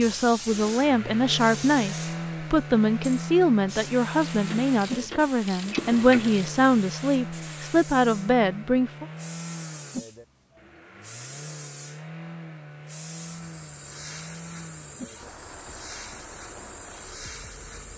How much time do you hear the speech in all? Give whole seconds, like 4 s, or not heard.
9 s.